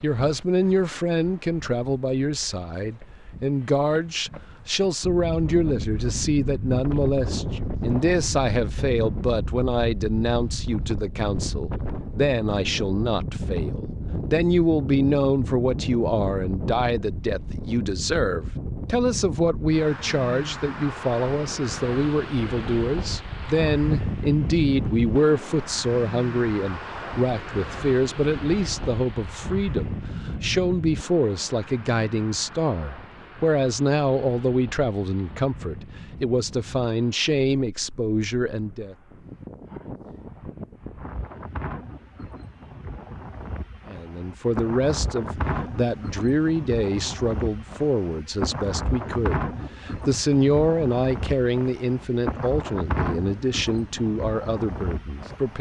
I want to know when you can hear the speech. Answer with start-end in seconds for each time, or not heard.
0.0-39.0, 43.9-55.5.